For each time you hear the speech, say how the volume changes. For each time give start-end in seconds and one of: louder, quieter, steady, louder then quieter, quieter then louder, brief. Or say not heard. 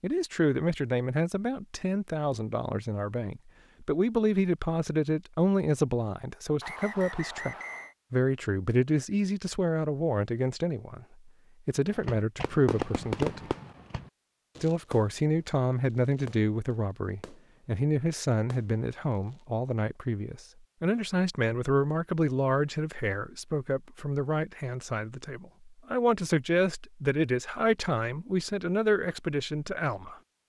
0.0-13.5 steady
14.6-30.1 steady.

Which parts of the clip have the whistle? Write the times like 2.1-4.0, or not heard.
6.6-8.0.